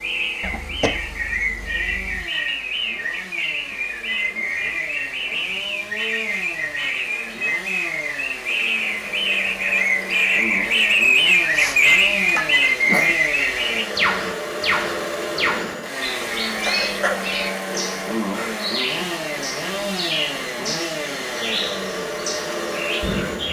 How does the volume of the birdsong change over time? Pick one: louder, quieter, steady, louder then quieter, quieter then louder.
louder then quieter.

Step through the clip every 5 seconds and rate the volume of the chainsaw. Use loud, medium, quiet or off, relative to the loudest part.
quiet, medium, loud, loud, loud.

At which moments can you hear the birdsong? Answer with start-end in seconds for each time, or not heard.
0.0-23.4.